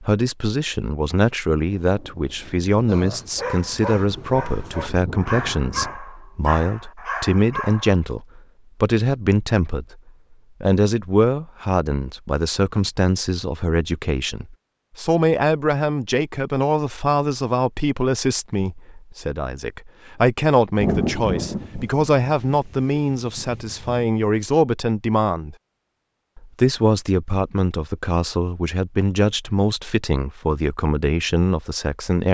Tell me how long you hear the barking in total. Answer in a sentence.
You can hear the barking for 5 seconds altogether.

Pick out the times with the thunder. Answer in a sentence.
The thunder can be heard from 1.8 to 6.0 s and from 20.8 to 24.1 s.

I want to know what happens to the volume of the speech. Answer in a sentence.
The loudness of the speech stays about the same.